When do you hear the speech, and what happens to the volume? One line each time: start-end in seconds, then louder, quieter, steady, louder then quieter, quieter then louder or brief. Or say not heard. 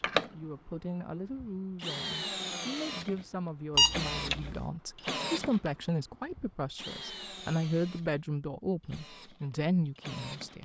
0.0-10.6 louder.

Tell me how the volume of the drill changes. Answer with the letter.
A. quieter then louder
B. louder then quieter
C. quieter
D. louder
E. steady
C.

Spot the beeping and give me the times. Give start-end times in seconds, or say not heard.
3.8-4.7.